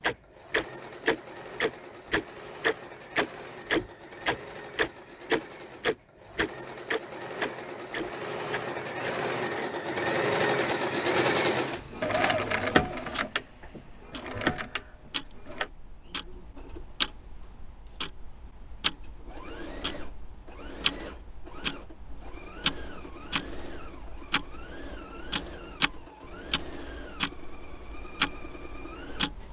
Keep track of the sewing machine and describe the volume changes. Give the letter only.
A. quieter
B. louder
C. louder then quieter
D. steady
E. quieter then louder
C.